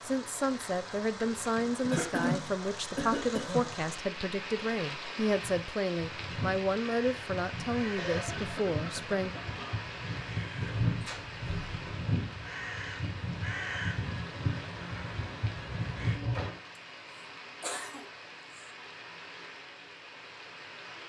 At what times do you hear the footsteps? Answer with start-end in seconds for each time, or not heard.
not heard.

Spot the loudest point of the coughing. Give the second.
2 s.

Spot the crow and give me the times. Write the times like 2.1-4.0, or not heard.
5.3-16.2.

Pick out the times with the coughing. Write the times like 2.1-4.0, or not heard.
1.9-3.7, 8.0-9.9, 17.6-18.6.